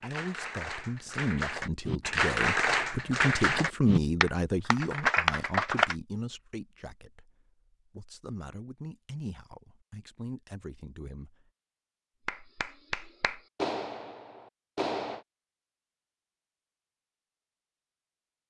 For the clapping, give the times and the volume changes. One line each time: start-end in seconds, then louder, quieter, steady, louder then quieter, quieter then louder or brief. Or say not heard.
0.0-6.0 louder
12.2-15.2 brief.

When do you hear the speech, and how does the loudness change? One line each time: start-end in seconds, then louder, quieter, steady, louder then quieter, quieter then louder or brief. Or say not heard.
0.0-11.5 louder then quieter.